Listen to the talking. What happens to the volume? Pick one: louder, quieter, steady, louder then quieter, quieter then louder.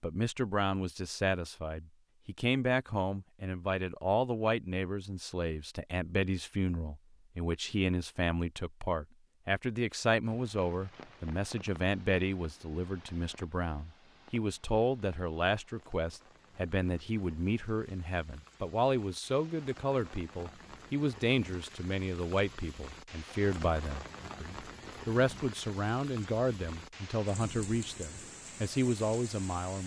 steady.